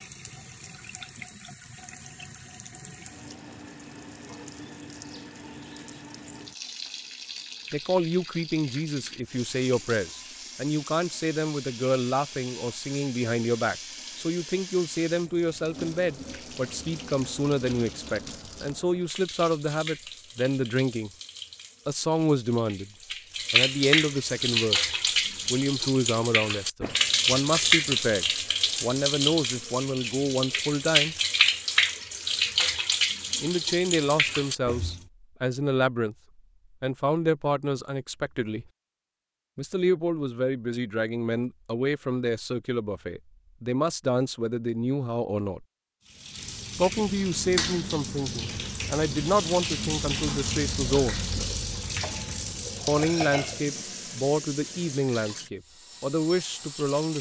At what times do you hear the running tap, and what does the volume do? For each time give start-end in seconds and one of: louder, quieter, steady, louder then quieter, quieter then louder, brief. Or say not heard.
0.0-35.0 louder
46.0-57.1 quieter.